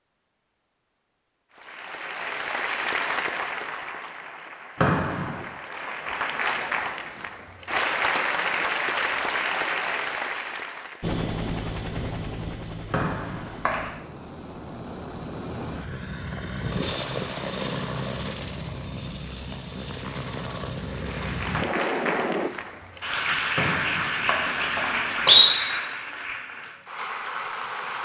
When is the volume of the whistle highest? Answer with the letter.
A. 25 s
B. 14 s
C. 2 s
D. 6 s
A.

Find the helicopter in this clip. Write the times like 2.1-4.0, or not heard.
11.0-22.5.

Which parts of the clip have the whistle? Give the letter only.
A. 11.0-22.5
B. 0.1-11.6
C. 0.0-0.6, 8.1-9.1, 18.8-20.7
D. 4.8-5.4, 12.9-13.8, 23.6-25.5
D.